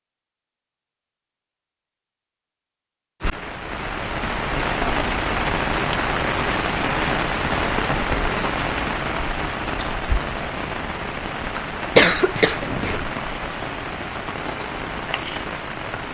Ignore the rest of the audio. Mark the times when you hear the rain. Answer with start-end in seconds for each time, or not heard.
3.2-16.0.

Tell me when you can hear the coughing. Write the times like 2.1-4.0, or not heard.
11.9-13.1.